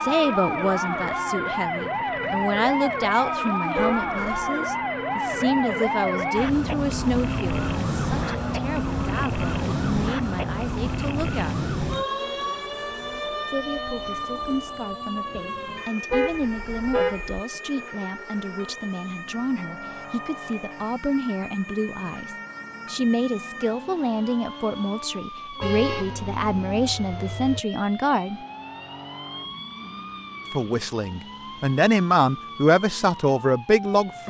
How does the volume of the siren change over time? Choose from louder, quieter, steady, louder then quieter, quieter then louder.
quieter.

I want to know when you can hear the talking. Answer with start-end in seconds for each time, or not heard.
0.0-11.7, 13.4-28.4, 30.5-34.2.